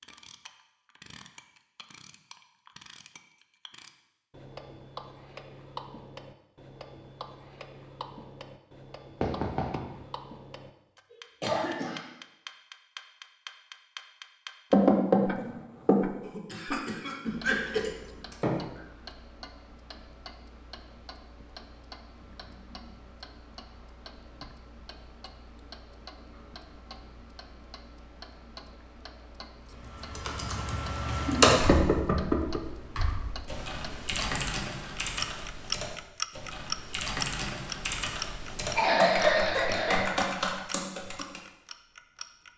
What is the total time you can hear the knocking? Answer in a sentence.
The knocking can be heard for 3 seconds in total.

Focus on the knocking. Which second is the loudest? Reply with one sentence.
The volume of the knocking peaks at 15 seconds.